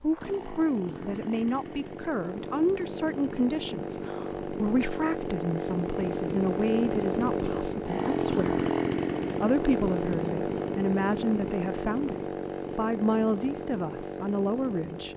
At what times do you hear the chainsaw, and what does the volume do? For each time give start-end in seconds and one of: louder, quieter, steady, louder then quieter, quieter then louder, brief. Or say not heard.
0.0-15.1 louder then quieter.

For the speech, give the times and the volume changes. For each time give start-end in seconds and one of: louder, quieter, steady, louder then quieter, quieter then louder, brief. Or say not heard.
0.0-8.6 steady
9.3-12.2 brief
12.8-15.1 brief.